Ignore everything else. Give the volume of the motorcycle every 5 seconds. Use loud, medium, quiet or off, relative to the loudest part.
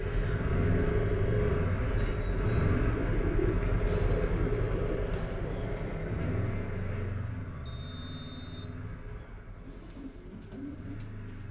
loud, medium, quiet.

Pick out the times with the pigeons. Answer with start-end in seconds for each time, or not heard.
1.9-6.0, 9.1-11.4.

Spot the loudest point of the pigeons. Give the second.
3 s.